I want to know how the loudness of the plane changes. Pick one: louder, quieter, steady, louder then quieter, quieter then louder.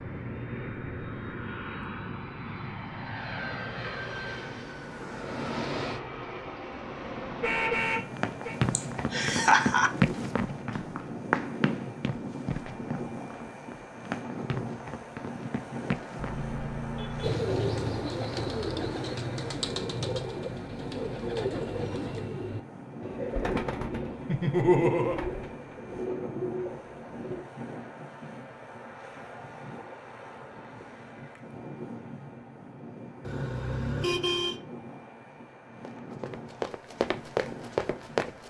quieter.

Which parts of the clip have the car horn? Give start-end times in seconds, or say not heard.
7.4-8.6, 16.1-17.4, 33.2-34.5.